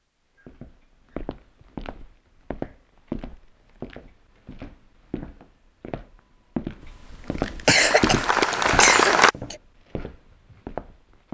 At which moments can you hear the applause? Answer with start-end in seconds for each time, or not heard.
7.8-9.3.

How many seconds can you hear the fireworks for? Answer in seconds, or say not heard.
not heard.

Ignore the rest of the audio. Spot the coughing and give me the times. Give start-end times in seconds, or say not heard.
7.7-9.6.